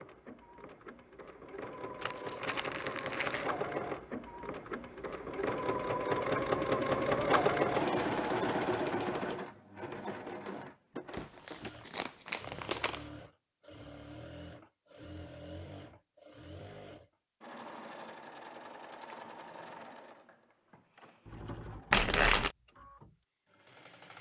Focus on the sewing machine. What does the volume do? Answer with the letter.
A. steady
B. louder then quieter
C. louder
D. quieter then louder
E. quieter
B.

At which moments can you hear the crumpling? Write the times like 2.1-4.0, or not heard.
2.0-3.5, 11.4-13.0, 21.9-22.5.